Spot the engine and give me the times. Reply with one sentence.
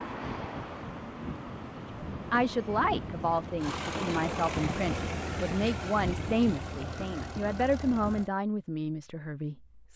You can hear the engine from 3.5 to 8.3 s.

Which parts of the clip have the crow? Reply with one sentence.
The crow can't be heard in this clip.